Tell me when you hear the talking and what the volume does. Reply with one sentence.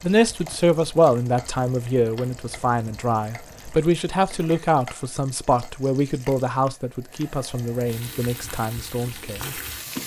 The talking can be heard from 0.0 to 9.6 s, getting quieter.